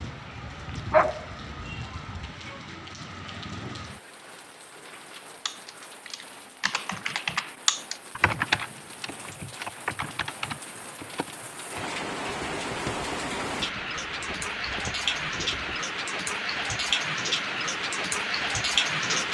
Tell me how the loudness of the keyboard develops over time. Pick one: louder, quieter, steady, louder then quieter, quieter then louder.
quieter.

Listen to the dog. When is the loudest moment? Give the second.
1 s.